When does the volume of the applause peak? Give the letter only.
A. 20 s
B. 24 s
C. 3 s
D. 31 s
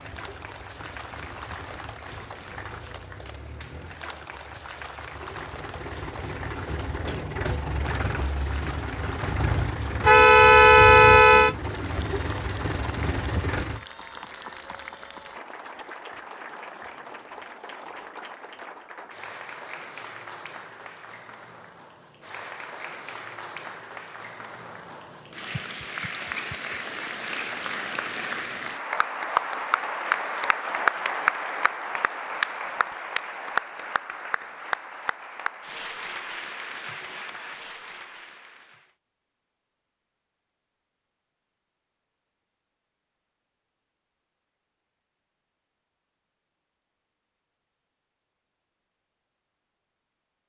D.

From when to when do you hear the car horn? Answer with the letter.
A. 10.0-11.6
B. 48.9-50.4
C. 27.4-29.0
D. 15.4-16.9
A.